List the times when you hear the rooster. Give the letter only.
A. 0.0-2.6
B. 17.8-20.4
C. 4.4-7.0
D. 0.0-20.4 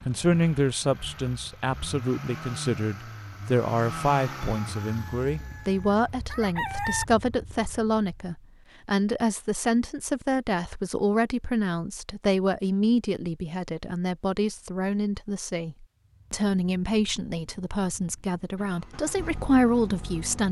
C.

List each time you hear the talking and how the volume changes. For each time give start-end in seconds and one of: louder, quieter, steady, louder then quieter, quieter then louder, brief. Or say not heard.
0.0-20.4 steady.